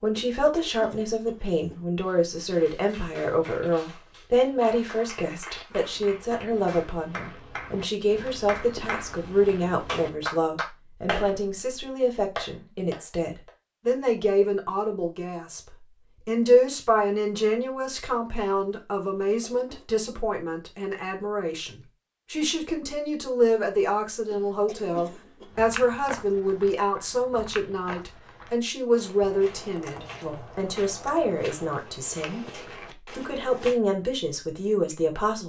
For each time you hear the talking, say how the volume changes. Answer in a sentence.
The talking can be heard from 0.0 to 35.4 s, at a steady volume.